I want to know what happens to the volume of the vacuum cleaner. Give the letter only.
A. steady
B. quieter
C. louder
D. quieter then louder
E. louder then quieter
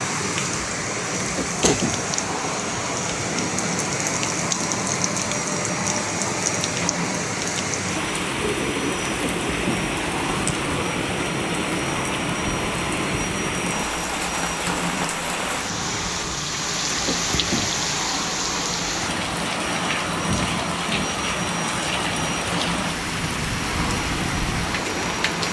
A.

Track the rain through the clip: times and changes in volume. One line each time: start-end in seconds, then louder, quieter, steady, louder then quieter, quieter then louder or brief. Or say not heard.
0.0-25.4 steady.